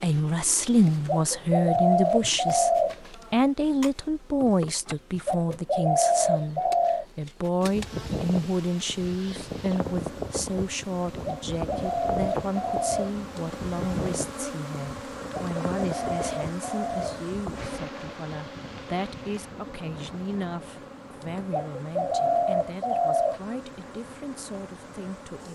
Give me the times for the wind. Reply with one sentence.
You can hear the wind from 7.6 to 25.4 s.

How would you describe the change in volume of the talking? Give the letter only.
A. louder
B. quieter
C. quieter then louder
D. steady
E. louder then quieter
B.